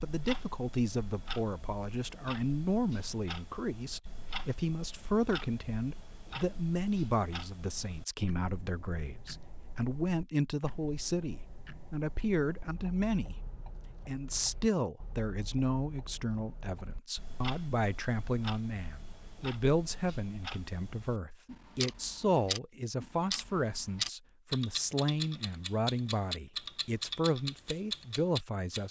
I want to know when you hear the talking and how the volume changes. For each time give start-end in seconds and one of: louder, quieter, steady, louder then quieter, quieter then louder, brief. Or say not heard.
0.0-28.8 steady.